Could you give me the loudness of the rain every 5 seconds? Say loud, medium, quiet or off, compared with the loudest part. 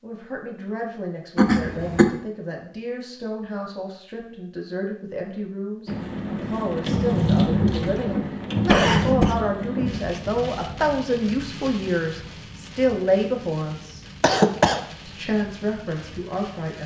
off, loud, quiet, quiet.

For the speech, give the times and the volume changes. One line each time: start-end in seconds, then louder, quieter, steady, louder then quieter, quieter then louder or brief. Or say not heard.
0.0-14.1 louder
15.1-16.8 brief.